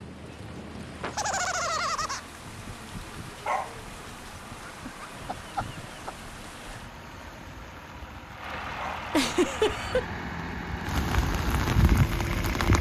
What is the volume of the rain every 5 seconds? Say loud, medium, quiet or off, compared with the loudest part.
quiet, quiet, loud.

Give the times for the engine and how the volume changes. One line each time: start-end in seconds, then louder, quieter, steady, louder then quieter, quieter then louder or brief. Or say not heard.
0.0-12.7 louder.